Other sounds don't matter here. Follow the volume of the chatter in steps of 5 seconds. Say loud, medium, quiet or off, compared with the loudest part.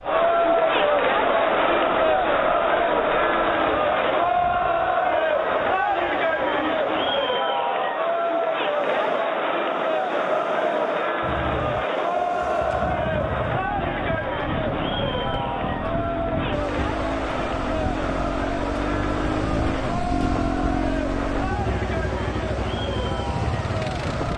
loud, loud, medium, medium, medium.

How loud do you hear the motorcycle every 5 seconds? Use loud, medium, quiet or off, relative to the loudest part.
off, off, medium, loud, loud.